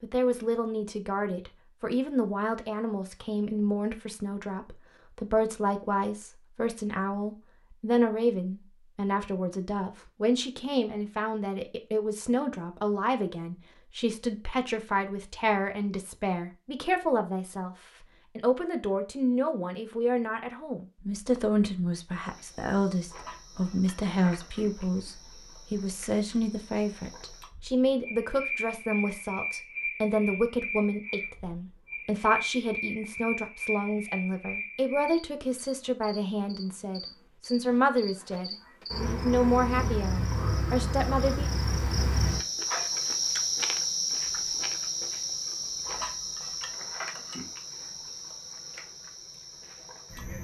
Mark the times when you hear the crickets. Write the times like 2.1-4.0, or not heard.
22.1-50.3.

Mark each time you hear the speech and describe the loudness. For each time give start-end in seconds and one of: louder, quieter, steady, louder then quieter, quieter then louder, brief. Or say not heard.
0.0-41.5 steady.